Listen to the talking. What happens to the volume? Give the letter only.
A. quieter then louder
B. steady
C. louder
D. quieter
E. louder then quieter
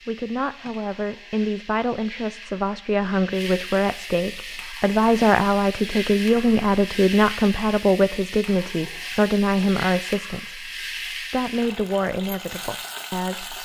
E.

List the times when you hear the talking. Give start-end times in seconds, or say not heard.
0.1-13.6.